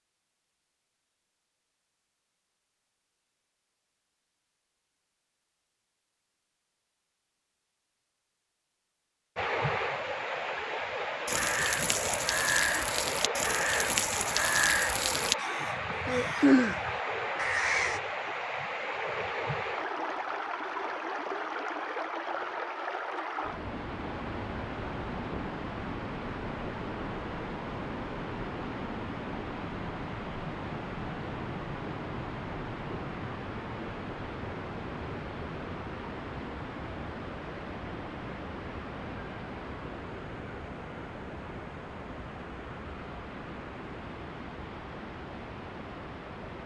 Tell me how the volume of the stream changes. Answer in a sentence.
The volume of the stream goes down.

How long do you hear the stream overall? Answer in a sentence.
You can hear the stream for 37 seconds altogether.